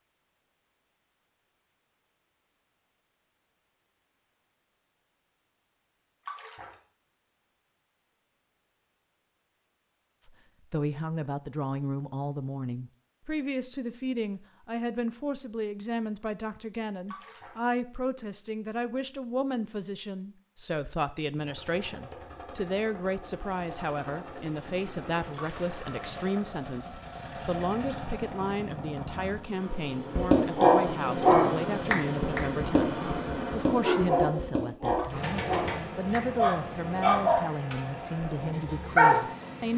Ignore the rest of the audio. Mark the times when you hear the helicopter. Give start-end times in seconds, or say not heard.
21.4-39.7.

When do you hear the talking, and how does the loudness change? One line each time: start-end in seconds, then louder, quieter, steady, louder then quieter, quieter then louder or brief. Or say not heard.
10.2-39.7 steady.